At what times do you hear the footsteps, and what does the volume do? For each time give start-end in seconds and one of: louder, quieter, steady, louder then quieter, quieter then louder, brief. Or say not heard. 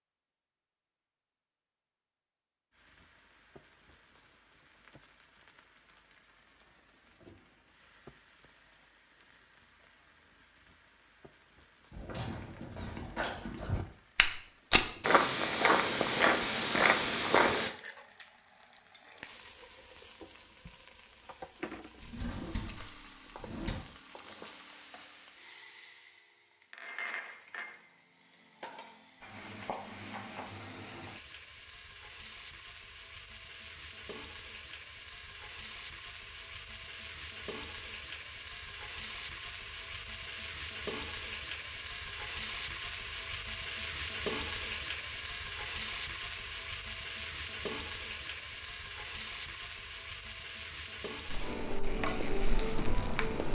11.9-17.7 louder
51.2-53.4 brief.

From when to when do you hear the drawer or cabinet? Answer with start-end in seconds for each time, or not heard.
22.0-23.9.